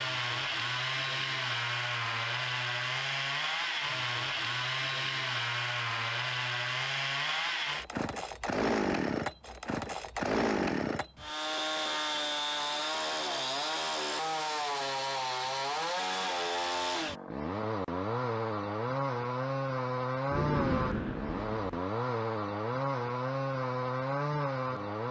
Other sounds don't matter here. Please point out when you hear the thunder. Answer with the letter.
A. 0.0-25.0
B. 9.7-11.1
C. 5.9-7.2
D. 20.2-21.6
D.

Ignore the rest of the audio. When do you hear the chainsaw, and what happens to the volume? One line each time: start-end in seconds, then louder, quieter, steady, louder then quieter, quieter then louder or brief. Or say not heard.
0.0-25.0 steady.